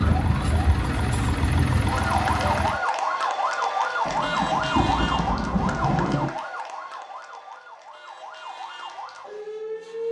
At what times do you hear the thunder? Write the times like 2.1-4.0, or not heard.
4.0-6.3.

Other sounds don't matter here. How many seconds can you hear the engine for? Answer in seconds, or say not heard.
3 s.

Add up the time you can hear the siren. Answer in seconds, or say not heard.
10 s.